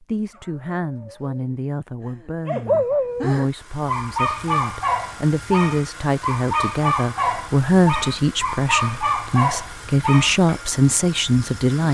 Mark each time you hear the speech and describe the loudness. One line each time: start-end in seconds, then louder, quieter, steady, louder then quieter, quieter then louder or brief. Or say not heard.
0.0-11.9 louder.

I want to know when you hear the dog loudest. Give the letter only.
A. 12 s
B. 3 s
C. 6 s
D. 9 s
B.